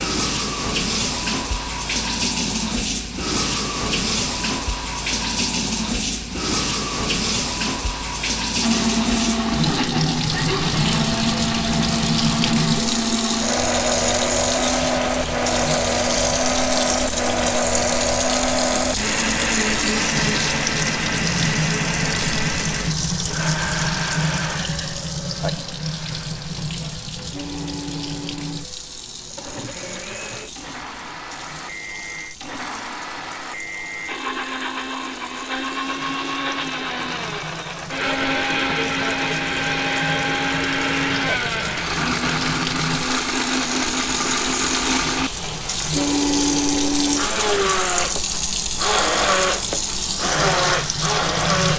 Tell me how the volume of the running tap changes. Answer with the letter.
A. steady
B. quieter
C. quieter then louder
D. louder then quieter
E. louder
C.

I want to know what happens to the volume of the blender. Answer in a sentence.
The loudness of the blender goes down, then up.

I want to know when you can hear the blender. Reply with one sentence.
You can hear the blender from 8.6 to 51.7 s.